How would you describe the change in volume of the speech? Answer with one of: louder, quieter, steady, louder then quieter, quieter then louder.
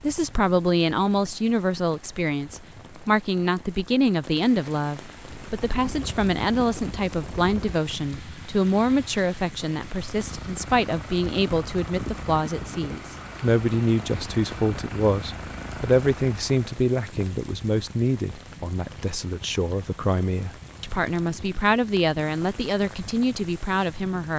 steady.